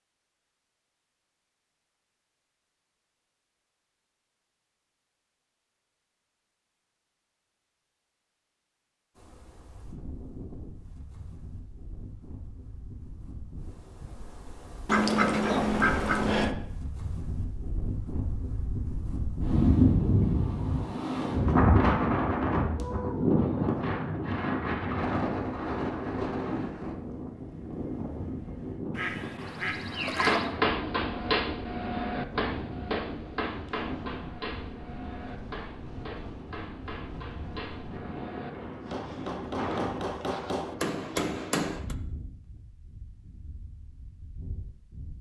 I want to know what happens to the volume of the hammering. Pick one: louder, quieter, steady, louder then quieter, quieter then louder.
quieter then louder.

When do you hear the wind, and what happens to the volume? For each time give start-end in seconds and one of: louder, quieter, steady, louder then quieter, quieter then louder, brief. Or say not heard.
9.2-45.1 louder then quieter.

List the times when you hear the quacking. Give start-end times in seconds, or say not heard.
14.8-16.6, 28.9-30.5.